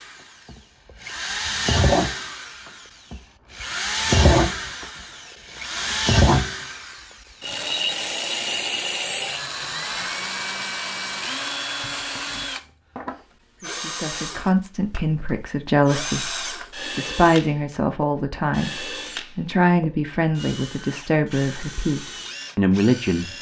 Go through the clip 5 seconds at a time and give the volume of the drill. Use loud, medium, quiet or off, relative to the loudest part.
loud, loud, medium, medium, quiet.